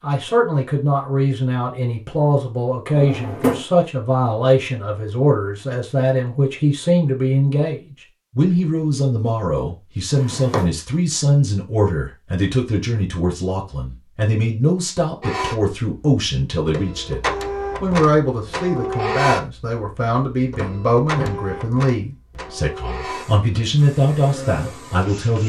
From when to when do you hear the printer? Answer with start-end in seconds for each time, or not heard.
15.2-25.4.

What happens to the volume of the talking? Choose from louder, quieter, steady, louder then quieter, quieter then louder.
steady.